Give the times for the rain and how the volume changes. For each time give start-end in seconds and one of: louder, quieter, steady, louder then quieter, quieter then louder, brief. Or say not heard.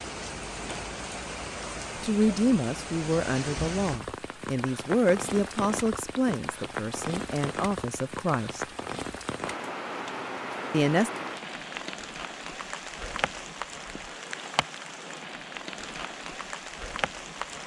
0.0-17.6 steady.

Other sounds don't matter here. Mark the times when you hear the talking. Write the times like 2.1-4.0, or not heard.
2.0-8.7, 10.7-11.1.